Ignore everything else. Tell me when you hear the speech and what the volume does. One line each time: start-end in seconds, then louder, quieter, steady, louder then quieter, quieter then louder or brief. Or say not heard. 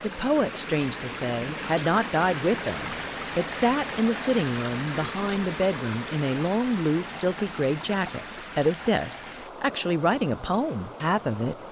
0.0-11.6 steady.